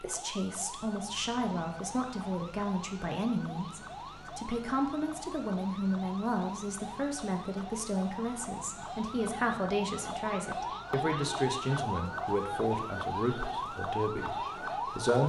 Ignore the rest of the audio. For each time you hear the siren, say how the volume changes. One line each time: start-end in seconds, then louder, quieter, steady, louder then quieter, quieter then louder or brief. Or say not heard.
0.0-15.2 louder.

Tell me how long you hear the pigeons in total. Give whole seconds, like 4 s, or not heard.
not heard.